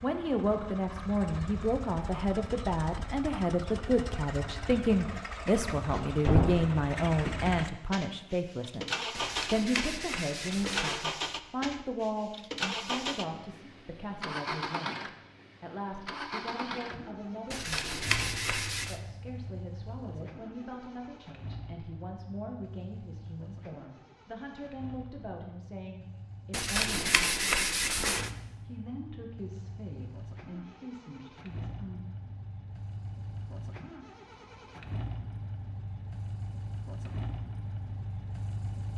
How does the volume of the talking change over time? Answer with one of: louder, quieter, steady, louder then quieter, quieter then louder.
quieter.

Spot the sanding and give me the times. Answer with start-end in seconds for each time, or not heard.
9.1-11.1, 17.5-19.0, 26.5-28.3.